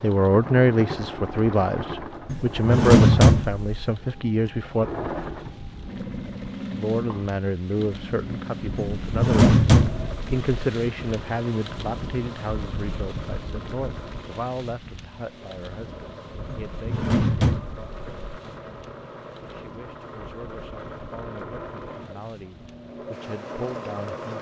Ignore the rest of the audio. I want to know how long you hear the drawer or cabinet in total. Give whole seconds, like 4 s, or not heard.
5 s.